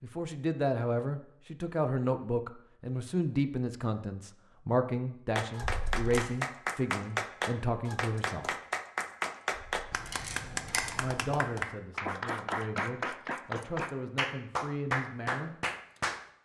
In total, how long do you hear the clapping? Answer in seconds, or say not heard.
11 s.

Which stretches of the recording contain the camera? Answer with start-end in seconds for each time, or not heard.
5.6-6.2, 10.1-10.9.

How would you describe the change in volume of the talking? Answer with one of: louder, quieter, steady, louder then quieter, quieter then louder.
quieter.